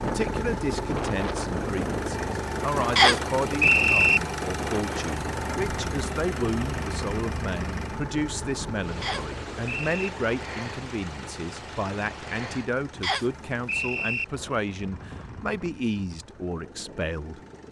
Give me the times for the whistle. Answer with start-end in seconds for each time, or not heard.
3.0-4.2, 9.0-10.1, 13.0-14.2.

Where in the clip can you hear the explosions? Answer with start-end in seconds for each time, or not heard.
not heard.